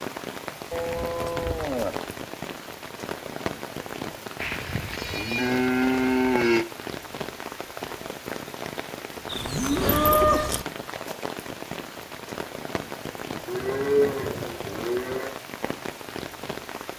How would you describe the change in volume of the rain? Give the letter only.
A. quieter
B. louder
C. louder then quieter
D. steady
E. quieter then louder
D.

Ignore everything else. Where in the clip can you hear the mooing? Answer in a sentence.
You can hear the mooing from 0.7 to 2.1 s, from 4.4 to 6.7 s, from 9.3 to 10.7 s and from 13.4 to 15.3 s.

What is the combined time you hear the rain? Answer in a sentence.
The rain can be heard for 17 seconds in total.